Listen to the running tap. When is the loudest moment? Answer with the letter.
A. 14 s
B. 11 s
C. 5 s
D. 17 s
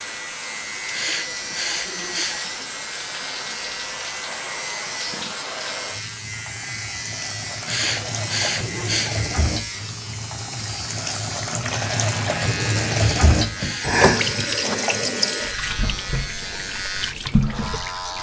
A.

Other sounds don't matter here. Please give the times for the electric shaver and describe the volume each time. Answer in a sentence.
The electric shaver can be heard from 0.0 to 18.1 s, at a steady volume.